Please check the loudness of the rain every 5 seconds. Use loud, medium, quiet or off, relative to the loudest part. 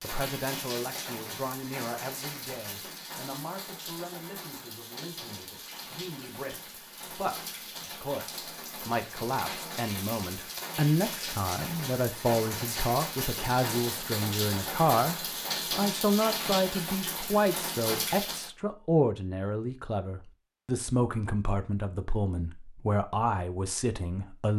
medium, medium, loud, loud, off.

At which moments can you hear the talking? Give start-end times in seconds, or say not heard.
0.0-24.5.